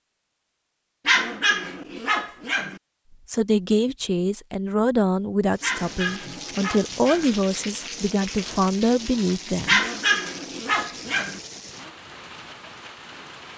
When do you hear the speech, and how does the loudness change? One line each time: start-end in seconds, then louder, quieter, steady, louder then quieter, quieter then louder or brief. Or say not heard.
3.2-9.8 steady.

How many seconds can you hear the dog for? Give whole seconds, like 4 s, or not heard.
5 s.